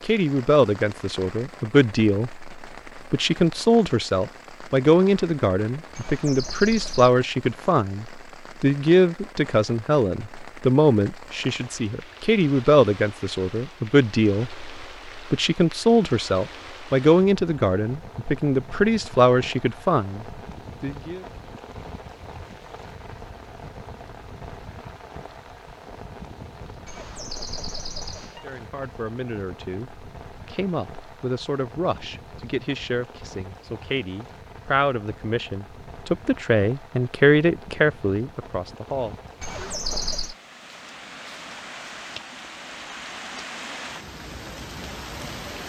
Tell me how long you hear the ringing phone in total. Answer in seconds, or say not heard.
4 s.